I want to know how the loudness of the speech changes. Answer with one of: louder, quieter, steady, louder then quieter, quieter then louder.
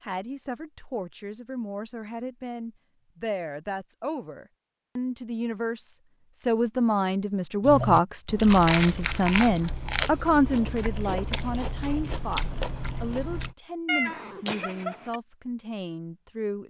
louder then quieter.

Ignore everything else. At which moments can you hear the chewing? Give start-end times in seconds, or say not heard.
7.6-13.6.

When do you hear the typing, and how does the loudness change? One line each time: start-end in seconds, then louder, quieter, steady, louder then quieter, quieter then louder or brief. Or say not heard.
not heard.